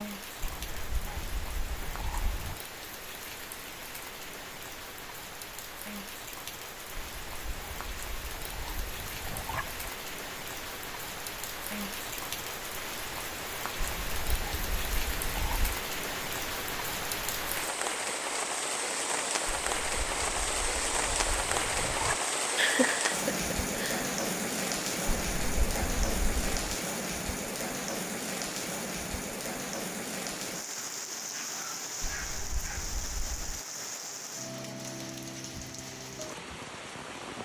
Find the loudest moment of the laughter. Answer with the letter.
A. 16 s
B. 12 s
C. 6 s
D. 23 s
D.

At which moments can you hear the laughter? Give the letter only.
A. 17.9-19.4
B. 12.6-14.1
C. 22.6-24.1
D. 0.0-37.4
C.